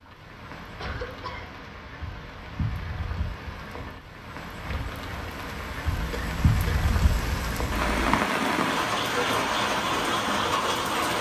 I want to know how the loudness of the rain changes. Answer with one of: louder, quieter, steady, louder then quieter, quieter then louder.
louder.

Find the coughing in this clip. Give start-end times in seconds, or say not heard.
0.8-1.6, 5.9-8.0.